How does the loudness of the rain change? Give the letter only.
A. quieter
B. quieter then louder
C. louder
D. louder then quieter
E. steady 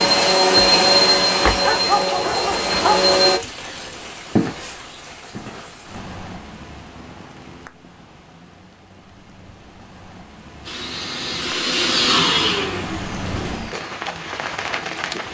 B.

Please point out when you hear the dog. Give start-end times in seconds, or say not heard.
1.6-3.1.